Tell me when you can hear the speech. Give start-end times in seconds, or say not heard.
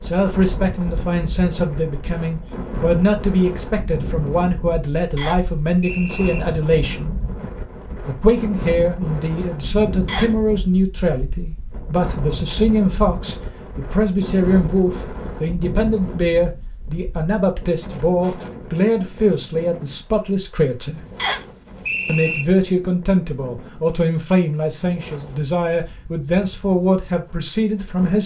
0.0-7.2, 8.1-21.0, 22.1-28.2.